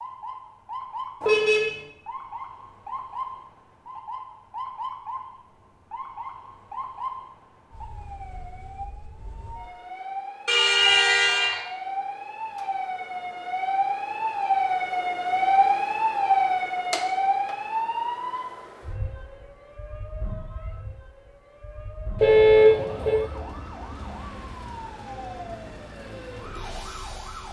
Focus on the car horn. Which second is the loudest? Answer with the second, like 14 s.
23 s.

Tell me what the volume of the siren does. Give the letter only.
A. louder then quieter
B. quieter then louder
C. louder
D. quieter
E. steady
A.